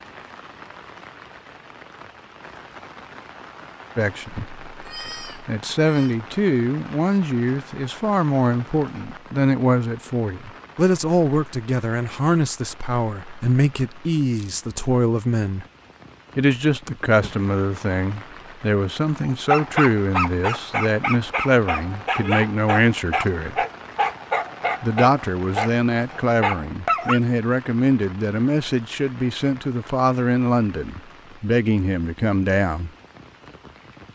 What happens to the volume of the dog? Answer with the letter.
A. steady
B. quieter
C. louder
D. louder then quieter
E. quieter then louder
A.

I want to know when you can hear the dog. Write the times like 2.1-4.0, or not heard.
19.2-27.2.